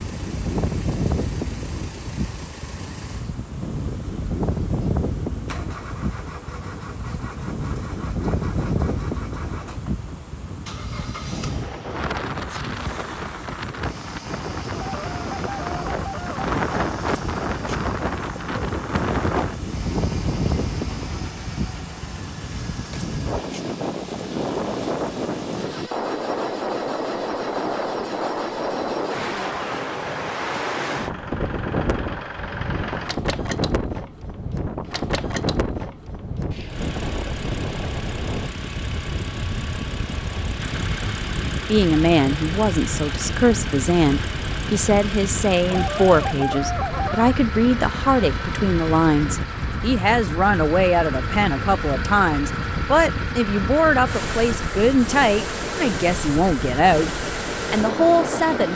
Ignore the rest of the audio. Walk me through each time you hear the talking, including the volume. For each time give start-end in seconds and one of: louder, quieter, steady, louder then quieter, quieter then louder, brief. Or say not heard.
41.6-58.7 steady.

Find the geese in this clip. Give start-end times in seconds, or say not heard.
14.7-16.4, 45.6-47.4.